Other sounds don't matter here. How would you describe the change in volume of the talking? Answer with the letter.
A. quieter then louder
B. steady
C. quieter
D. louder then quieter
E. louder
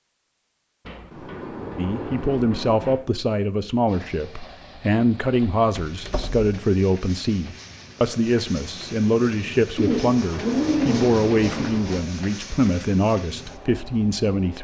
B.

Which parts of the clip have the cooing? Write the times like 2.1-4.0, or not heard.
9.8-11.8.